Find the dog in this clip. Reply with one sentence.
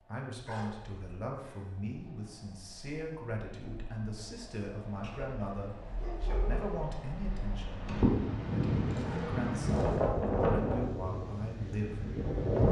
You can hear the dog from 0.5 to 1.8 s, from 5.0 to 6.7 s and from 8.9 to 10.1 s.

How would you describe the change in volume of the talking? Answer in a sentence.
The volume of the talking stays about the same.